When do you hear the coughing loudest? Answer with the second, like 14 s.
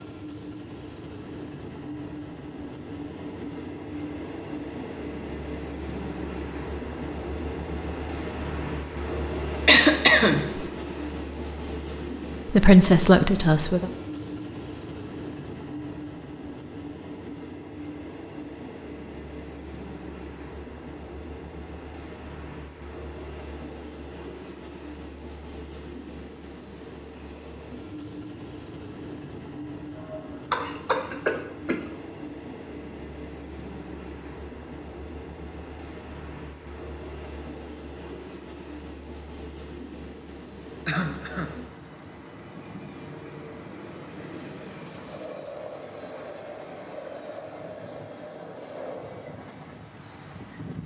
10 s.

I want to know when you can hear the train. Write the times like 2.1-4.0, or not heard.
0.0-50.8.